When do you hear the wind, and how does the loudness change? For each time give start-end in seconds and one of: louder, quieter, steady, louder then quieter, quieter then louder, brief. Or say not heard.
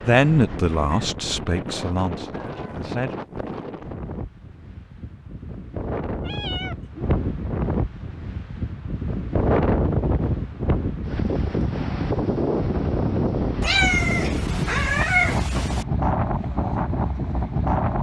0.0-17.9 louder.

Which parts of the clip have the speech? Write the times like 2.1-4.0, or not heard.
0.0-3.1.